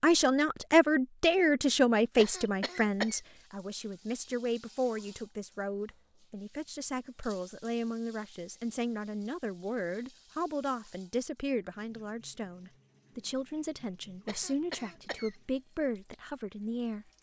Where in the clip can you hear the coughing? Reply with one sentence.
You can hear the coughing from 2.1 to 3.2 s and from 14.2 to 15.3 s.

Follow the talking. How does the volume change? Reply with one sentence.
The volume of the talking goes down.